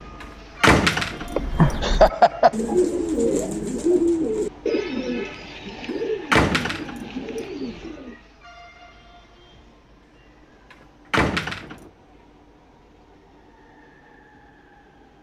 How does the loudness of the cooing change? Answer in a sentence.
The volume of the cooing goes down.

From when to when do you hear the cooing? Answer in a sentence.
You can hear the cooing from 1.2 to 8.2 s.